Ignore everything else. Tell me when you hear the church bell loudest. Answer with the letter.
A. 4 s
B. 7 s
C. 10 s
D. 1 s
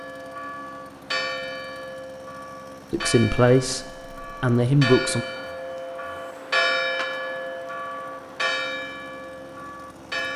B.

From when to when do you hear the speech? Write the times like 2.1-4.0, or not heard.
2.9-5.2.